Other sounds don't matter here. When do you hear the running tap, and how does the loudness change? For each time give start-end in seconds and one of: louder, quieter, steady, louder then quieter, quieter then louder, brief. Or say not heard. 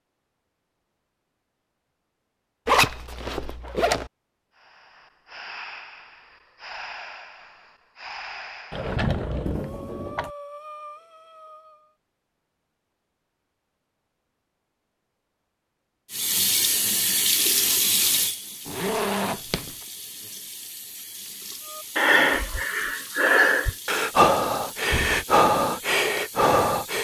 16.1-27.0 quieter.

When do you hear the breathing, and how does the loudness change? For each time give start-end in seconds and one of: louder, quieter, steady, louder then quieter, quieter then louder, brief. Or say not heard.
4.5-11.9 steady
21.7-27.0 steady.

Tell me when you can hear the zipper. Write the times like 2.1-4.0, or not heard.
2.6-4.1, 18.6-19.7.